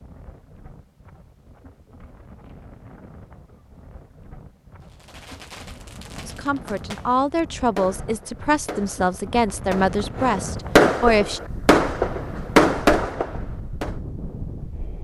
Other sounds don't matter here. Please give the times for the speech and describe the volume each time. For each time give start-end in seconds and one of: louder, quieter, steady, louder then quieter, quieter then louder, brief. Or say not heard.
6.2-11.4 steady.